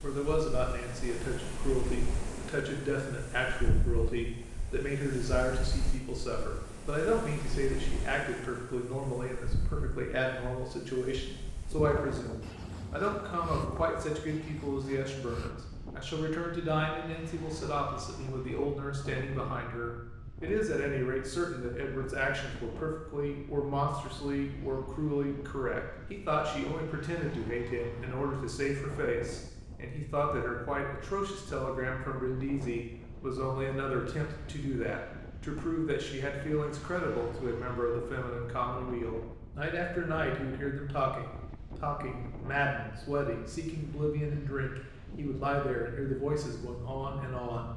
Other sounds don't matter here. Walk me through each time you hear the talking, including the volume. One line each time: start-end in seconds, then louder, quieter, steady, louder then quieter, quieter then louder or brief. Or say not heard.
0.0-47.7 steady.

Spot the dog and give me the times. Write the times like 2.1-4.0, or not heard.
not heard.